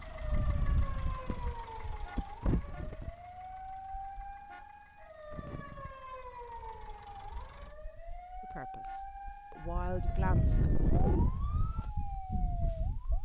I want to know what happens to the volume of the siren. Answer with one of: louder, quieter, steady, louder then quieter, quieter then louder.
steady.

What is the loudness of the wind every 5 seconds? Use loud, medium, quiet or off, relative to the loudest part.
medium, quiet, loud.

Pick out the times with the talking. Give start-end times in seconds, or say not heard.
8.4-10.9.